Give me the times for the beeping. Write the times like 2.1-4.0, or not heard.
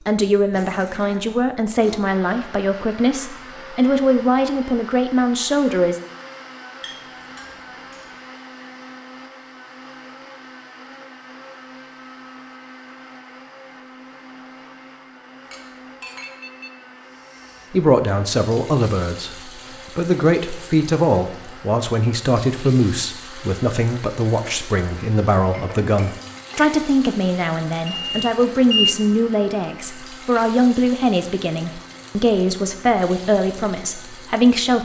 3.5-4.7, 16.0-16.8, 27.9-28.9.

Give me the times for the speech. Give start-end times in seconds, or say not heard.
0.1-6.0, 17.7-34.8.